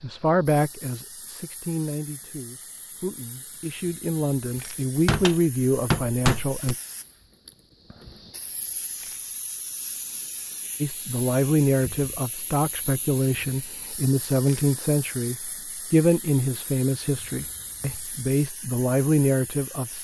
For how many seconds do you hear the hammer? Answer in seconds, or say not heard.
2 s.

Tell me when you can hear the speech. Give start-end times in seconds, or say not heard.
0.0-6.8, 10.8-19.9.